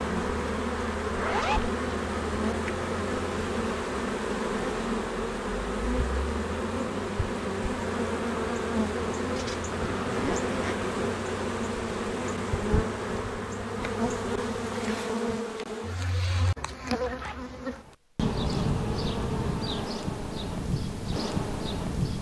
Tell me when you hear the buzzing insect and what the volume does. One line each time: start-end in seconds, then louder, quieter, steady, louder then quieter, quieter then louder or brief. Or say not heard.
0.0-22.1 steady.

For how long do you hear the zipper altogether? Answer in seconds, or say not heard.
2 s.